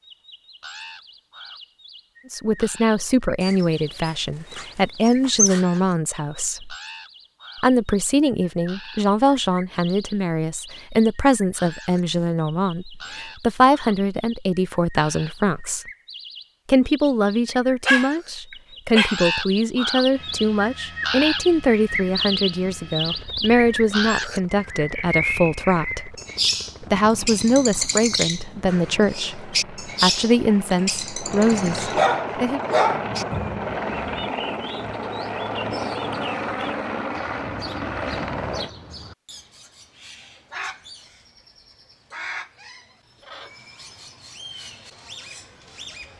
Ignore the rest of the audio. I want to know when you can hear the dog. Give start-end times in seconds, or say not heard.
3.4-5.7, 17.9-19.1, 31.9-33.5.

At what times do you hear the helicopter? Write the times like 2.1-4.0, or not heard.
20.1-38.7.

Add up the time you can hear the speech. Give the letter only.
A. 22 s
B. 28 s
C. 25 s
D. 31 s
B.